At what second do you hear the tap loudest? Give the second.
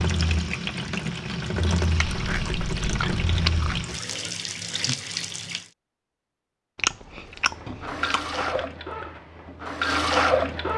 10 s.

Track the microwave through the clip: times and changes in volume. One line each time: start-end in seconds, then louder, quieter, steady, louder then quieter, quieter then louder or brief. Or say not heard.
not heard.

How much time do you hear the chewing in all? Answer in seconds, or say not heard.
4 s.